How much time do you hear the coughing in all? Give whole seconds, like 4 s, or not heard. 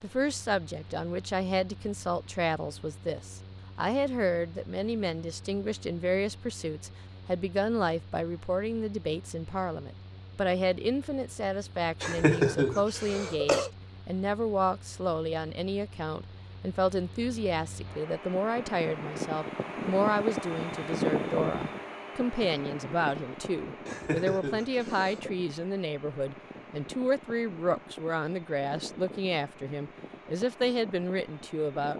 3 s.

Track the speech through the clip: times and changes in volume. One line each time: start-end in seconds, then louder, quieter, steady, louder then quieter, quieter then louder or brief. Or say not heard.
0.0-31.9 steady.